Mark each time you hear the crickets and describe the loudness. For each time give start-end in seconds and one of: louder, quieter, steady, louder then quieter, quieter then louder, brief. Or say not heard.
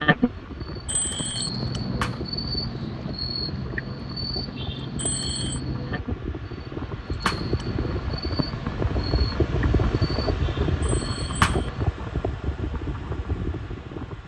0.0-14.2 quieter.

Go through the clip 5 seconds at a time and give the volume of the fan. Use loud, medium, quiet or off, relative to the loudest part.
medium, loud, loud.